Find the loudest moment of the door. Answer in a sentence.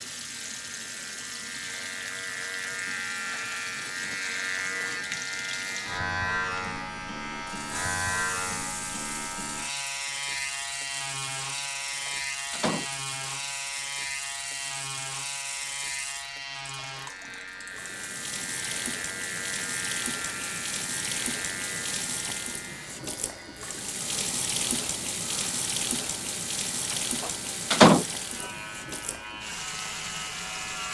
The volume of the door peaks at 28 seconds.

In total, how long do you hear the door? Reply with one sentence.
The door can be heard for 2 seconds in total.